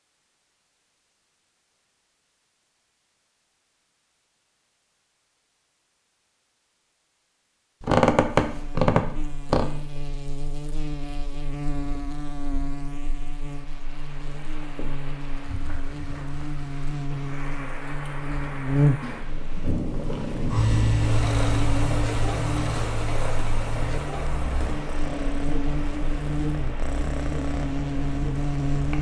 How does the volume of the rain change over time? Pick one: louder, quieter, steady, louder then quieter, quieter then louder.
louder then quieter.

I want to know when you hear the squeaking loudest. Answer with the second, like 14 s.
8 s.